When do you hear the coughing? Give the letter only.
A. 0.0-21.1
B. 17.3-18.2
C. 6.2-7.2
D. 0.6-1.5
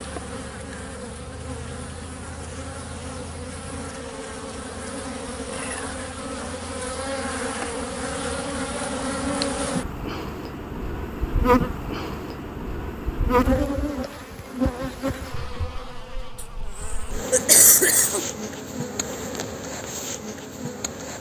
B.